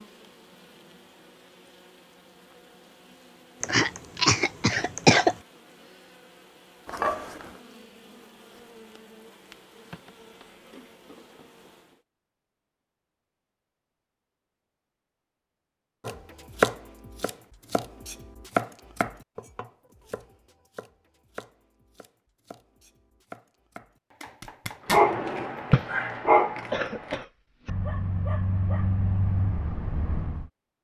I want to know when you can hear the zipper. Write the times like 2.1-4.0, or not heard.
6.8-7.6, 24.2-25.1.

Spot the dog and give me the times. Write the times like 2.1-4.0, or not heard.
24.9-30.4.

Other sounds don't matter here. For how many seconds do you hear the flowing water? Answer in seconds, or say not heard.
not heard.